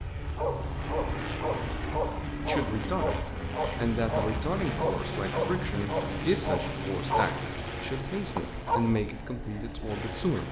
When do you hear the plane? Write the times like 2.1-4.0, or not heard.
0.0-10.4.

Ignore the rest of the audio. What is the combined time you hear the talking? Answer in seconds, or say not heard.
8 s.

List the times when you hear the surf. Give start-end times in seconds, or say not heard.
not heard.